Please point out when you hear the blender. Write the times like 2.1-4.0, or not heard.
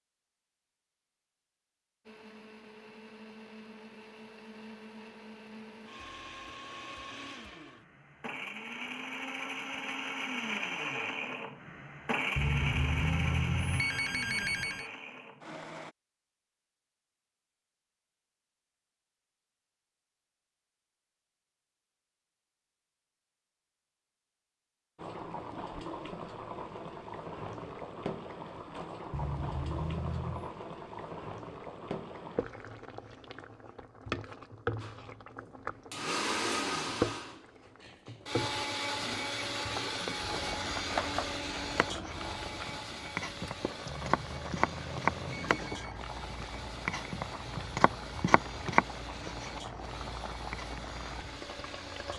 2.0-15.9, 34.8-52.1.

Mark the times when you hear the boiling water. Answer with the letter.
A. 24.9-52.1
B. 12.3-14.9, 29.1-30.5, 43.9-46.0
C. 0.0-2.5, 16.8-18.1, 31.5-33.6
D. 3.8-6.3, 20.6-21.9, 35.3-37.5
A.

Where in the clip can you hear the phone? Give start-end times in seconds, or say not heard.
12.3-14.9, 29.1-30.5, 43.9-46.0.